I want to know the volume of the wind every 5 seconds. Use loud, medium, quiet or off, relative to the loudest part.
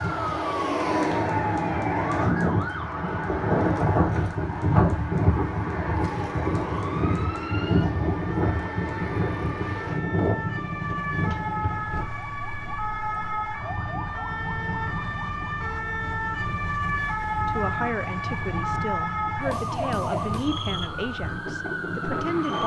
loud, loud, medium, quiet, medium.